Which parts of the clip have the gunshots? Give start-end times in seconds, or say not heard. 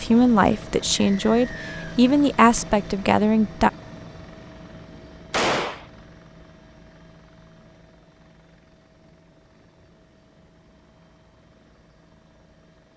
5.3-5.8.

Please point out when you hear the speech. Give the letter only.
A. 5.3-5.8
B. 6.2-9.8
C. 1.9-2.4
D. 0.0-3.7
D.